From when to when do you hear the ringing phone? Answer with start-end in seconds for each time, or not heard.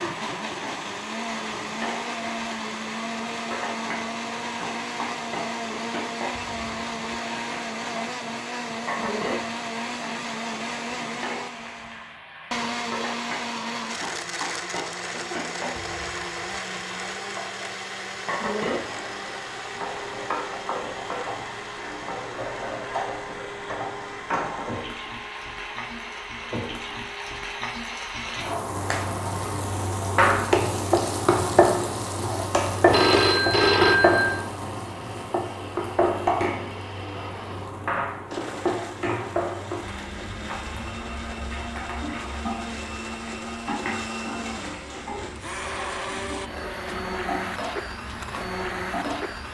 32.9-34.5.